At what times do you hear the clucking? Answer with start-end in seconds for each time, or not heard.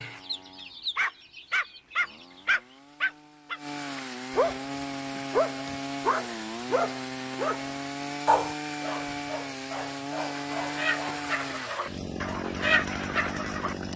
0.0-2.5, 10.6-13.8.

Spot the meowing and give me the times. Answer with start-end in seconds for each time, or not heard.
not heard.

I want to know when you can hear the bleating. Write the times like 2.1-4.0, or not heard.
not heard.